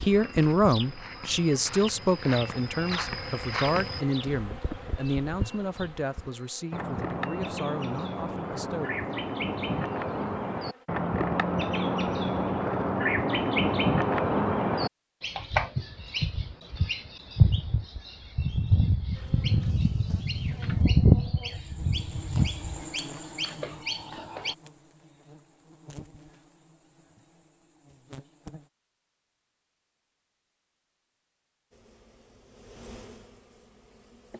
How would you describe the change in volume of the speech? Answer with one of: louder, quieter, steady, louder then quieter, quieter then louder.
quieter.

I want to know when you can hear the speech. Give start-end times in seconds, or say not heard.
0.0-9.1.